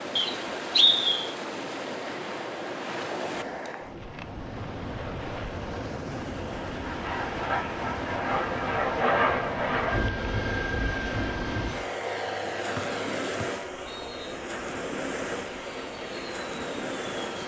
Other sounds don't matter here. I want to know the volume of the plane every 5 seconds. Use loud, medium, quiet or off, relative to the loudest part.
off, loud, medium, medium.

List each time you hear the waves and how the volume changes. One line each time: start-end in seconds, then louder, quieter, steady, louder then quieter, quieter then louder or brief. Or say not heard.
0.0-17.4 steady.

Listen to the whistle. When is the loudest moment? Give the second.
1 s.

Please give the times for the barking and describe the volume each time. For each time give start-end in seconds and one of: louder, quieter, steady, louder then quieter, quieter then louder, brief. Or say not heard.
not heard.